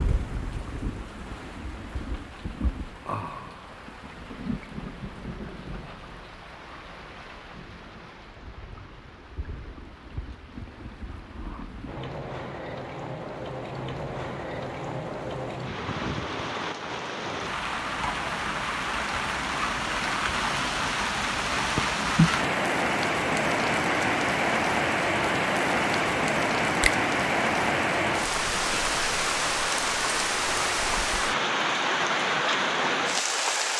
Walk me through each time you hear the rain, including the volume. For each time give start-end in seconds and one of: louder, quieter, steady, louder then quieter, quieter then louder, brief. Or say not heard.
0.0-33.7 louder.